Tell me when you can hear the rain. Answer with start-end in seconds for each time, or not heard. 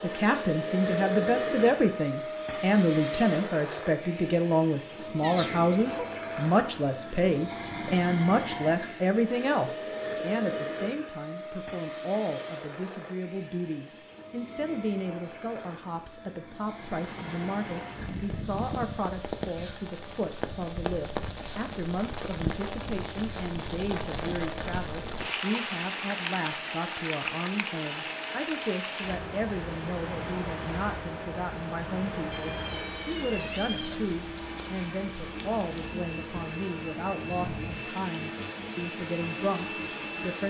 16.7-40.4.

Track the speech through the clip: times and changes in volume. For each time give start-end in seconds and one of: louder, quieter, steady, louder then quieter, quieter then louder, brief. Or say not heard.
0.0-40.4 quieter.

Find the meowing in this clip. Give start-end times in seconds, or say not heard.
5.2-6.0, 32.3-34.1.